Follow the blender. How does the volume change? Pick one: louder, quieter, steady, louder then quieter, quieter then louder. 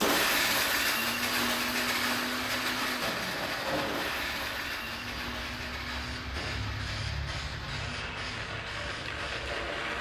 quieter.